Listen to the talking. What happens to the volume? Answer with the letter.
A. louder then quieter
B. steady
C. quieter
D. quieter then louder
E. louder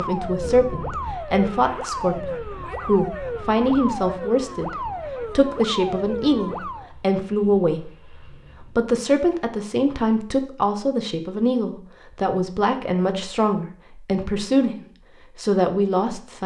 B.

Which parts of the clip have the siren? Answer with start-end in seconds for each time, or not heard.
0.0-6.9.